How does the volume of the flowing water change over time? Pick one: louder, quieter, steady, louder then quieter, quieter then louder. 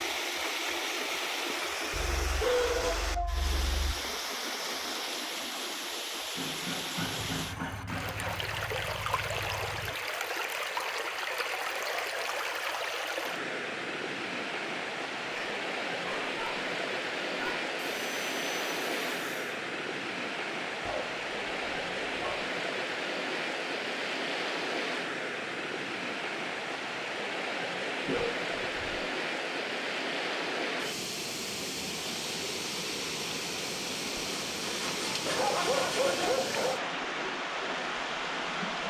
steady.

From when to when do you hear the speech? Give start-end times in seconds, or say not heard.
not heard.